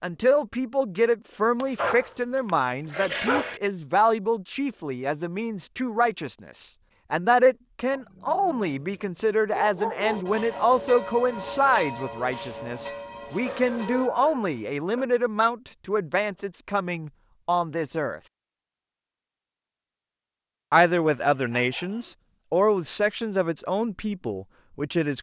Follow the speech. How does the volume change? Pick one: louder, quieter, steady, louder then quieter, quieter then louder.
steady.